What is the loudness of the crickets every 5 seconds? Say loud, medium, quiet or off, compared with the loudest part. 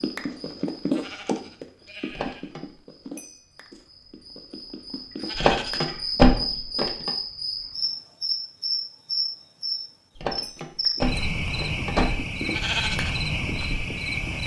quiet, loud, loud.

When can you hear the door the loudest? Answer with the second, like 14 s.
6 s.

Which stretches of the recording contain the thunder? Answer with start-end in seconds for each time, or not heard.
not heard.